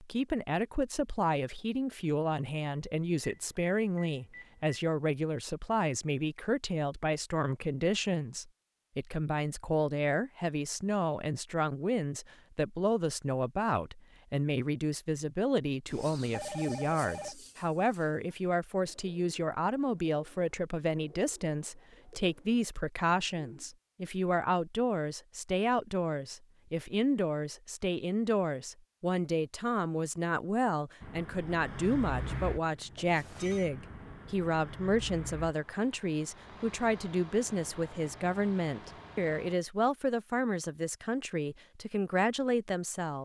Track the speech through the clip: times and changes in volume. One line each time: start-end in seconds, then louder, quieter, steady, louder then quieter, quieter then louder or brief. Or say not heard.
0.0-43.2 steady.